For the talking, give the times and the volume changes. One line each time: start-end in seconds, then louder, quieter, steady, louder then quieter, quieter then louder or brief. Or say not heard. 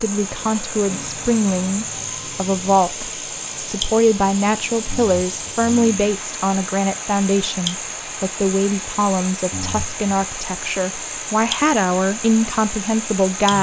0.0-13.5 steady.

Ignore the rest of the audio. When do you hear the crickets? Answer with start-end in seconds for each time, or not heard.
0.0-13.5.